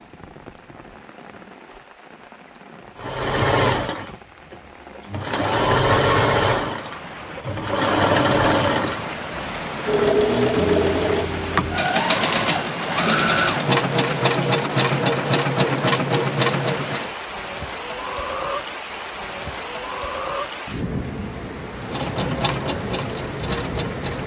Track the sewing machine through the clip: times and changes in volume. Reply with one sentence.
You can hear the sewing machine from 3.0 to 17.1 s, at a steady volume; and briefly from 21.8 to 24.2 s.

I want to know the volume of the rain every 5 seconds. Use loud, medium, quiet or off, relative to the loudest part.
quiet, loud, loud, loud, loud.